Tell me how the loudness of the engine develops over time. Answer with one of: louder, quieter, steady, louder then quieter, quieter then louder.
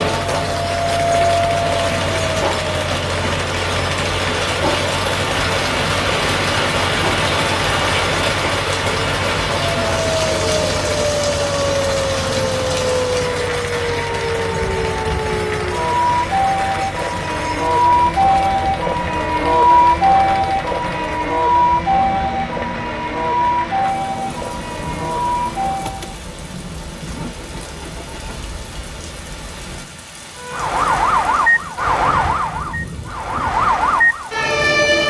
quieter.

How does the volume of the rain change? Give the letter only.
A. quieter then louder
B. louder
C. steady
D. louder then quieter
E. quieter
E.